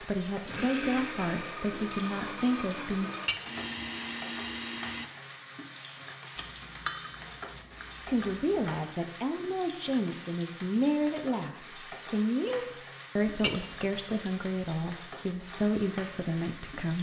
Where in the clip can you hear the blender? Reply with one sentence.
You can hear the blender from 0.0 to 5.1 s.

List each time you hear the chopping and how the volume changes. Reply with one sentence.
You can't hear the chopping here.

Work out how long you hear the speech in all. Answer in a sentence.
The speech can be heard for 12 seconds in total.